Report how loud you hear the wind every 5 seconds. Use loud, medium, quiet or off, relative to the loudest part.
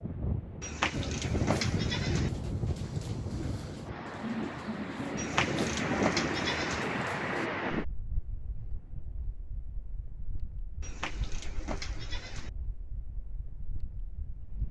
loud, loud, quiet.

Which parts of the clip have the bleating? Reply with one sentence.
You can hear the bleating from 0.6 to 2.3 s, from 5.2 to 6.8 s and from 10.8 to 12.5 s.